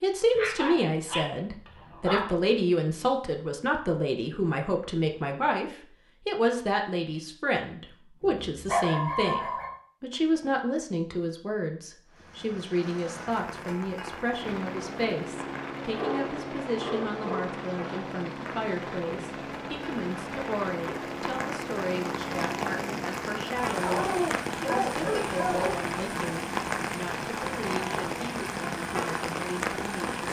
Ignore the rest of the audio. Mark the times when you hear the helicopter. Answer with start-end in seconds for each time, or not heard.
14.4-30.2.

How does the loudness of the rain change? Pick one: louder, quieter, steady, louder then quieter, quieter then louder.
louder.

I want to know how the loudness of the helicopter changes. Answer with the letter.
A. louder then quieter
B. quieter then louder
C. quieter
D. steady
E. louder
D.